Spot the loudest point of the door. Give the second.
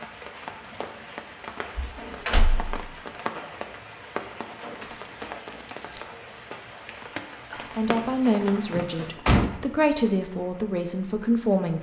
9 s.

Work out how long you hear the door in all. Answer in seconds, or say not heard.
2 s.